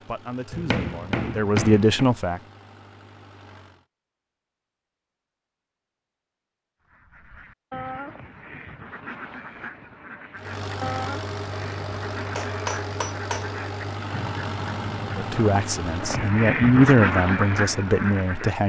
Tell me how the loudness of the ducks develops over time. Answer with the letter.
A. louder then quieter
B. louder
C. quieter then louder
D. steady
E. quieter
B.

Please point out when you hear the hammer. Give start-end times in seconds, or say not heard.
0.5-2.1, 12.2-13.5.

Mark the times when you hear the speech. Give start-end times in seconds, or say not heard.
0.0-2.4, 15.1-18.6.